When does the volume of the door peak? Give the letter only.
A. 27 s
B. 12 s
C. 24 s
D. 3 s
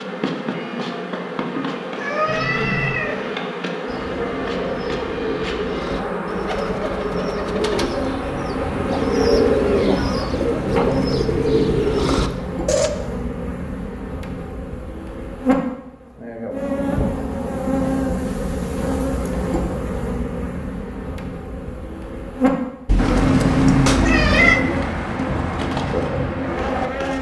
C.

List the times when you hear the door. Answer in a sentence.
You can hear the door from 2.2 to 3.0 s, from 10.6 to 12.6 s and from 23.2 to 24.0 s.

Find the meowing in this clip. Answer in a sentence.
The meowing can be heard from 1.9 to 3.4 s, from 9.6 to 10.8 s and from 22.9 to 24.6 s.